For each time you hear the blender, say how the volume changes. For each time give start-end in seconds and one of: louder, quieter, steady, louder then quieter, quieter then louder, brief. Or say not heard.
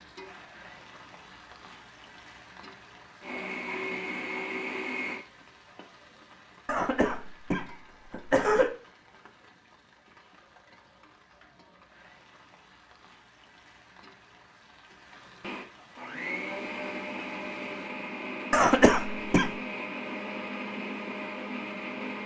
3.2-5.2 brief
15.4-22.2 steady.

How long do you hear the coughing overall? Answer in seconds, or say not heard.
3 s.